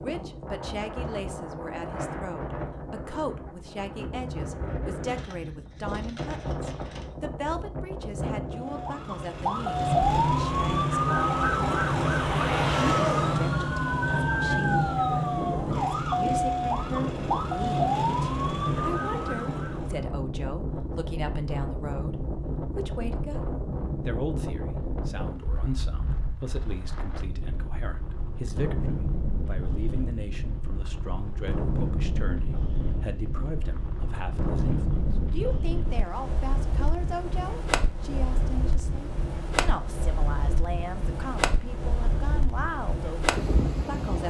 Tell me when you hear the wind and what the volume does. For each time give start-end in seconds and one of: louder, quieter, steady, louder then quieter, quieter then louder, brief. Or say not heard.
0.0-44.2 steady.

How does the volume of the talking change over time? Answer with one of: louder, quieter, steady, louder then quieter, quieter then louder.
steady.